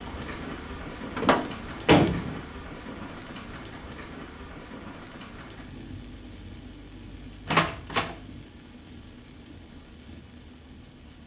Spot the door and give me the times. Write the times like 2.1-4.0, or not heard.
1.1-2.5, 7.5-8.2.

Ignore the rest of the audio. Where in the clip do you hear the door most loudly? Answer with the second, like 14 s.
2 s.